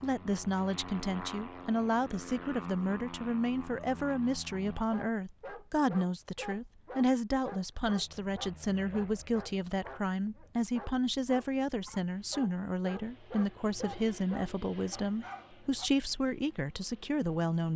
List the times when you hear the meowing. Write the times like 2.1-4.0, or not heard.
not heard.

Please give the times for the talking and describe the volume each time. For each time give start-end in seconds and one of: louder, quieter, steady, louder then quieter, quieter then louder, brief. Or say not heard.
0.0-17.7 steady.